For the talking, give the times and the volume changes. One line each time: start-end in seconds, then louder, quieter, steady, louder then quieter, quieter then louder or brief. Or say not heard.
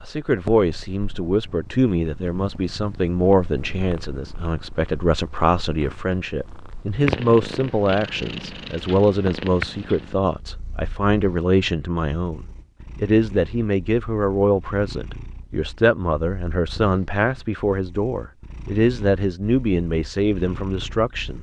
0.1-21.3 steady.